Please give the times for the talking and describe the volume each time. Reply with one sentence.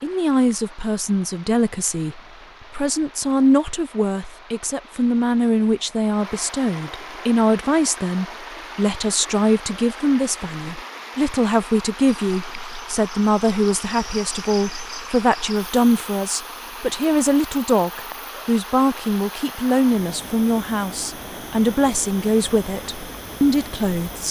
You can hear the talking from 0.0 to 24.2 s, at a steady volume.